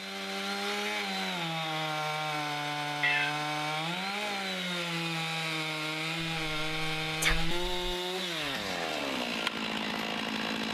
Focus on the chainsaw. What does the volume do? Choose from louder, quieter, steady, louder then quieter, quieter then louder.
steady.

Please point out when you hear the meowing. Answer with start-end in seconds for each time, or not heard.
3.0-3.5, 6.2-8.0.